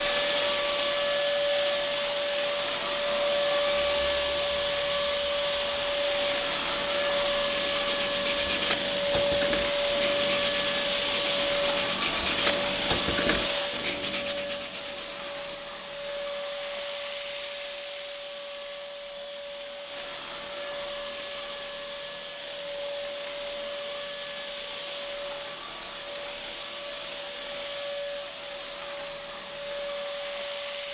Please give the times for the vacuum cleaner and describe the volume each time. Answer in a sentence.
The vacuum cleaner can be heard from 0.0 to 30.8 s, getting quieter.